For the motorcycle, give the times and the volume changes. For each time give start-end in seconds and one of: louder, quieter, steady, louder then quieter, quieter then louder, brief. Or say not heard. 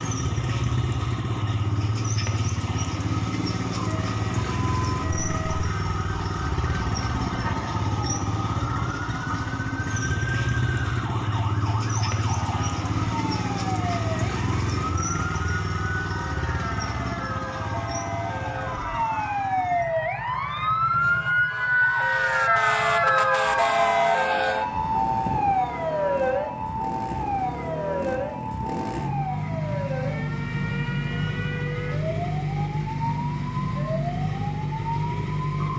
0.0-35.7 quieter then louder.